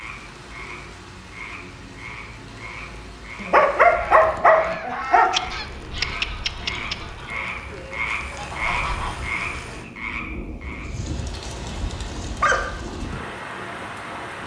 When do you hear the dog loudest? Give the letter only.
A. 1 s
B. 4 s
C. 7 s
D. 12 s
B.